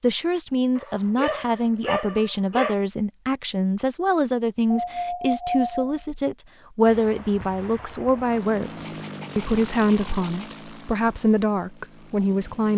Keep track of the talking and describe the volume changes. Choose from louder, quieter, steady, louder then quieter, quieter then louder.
steady.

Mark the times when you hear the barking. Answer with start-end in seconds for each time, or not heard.
0.8-2.8, 4.7-6.0, 8.8-10.7.